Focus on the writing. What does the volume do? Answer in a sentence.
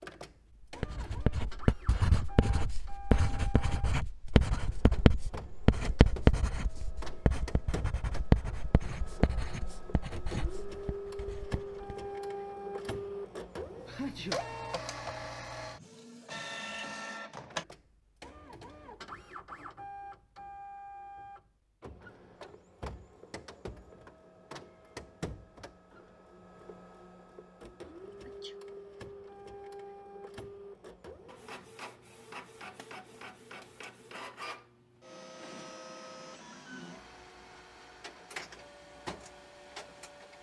The volume of the writing goes down.